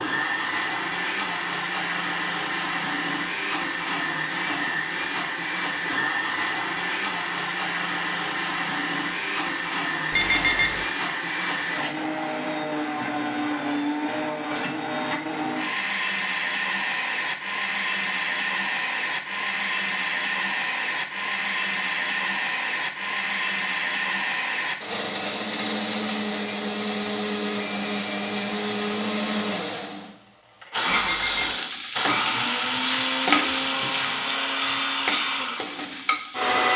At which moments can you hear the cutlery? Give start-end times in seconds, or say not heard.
not heard.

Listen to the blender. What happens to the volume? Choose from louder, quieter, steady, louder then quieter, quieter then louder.
steady.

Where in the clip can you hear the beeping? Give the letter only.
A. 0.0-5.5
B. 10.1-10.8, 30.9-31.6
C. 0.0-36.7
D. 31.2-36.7
B.